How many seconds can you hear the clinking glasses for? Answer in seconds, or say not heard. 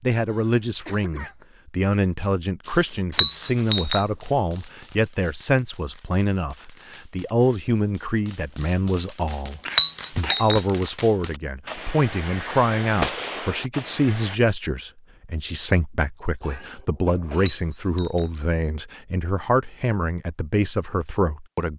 3 s.